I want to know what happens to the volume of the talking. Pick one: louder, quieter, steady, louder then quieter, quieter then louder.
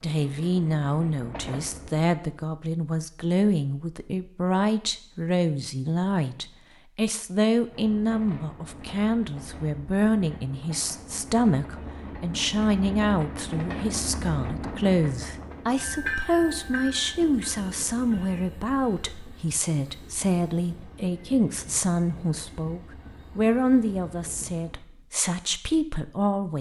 steady.